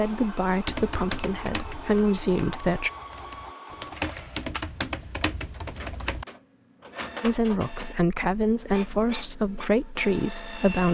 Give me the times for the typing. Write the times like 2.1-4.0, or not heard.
0.7-6.2.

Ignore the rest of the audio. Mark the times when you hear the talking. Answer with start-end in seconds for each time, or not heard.
0.0-2.9, 7.2-10.8.